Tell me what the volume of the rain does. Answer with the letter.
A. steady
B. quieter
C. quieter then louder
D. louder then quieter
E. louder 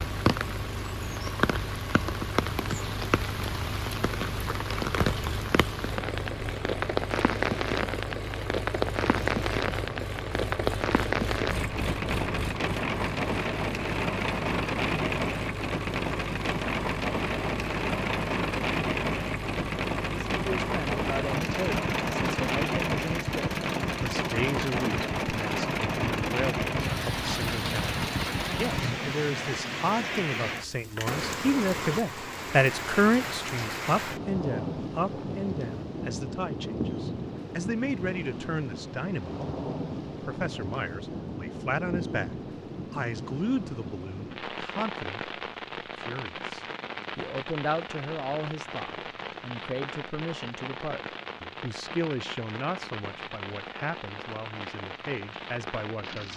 B.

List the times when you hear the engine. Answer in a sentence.
You can hear the engine from 0.0 to 28.9 s.